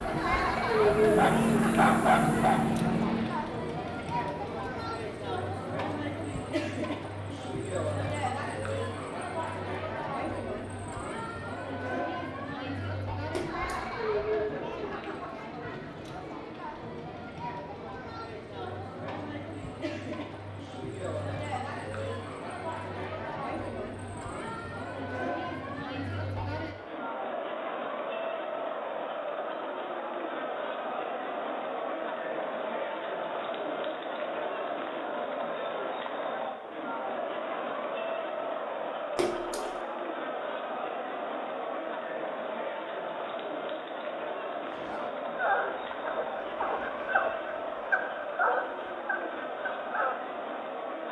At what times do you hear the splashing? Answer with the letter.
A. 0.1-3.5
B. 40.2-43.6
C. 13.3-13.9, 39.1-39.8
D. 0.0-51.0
C.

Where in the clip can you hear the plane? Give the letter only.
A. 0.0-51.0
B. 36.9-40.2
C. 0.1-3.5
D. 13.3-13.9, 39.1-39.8
C.